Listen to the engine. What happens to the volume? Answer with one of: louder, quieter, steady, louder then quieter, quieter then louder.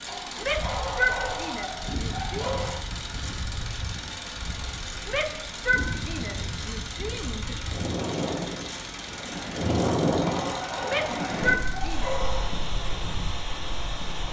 steady.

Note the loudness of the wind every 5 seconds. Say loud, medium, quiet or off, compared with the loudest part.
medium, loud, loud.